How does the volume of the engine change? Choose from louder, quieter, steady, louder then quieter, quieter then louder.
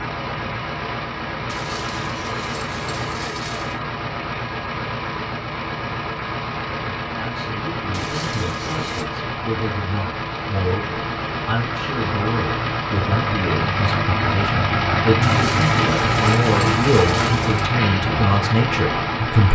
louder.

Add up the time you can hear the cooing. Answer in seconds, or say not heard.
not heard.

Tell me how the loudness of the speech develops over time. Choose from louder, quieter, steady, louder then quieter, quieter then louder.
louder.